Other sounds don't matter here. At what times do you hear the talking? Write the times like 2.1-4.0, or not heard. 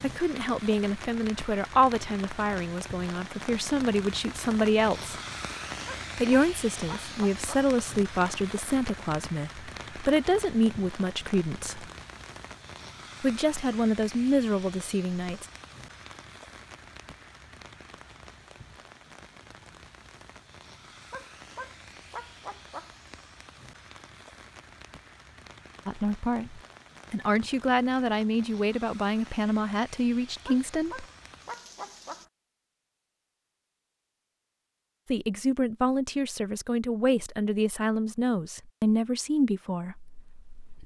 0.0-5.2, 6.2-11.8, 13.2-15.4, 25.9-31.1, 35.1-40.8.